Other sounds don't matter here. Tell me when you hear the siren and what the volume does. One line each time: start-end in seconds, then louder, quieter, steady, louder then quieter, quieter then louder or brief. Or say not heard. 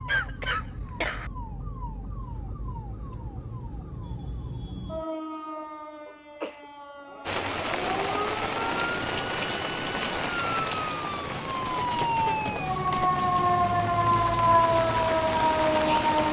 0.0-16.2 louder.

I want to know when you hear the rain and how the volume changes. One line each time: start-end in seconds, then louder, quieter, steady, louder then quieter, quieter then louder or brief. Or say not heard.
7.2-16.2 quieter then louder.